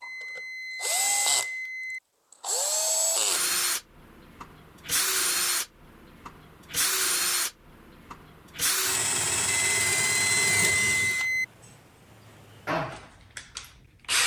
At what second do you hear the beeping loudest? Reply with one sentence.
The volume of the beeping peaks at 11 seconds.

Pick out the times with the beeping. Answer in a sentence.
The beeping can be heard from 0.0 to 2.0 s and from 9.7 to 11.4 s.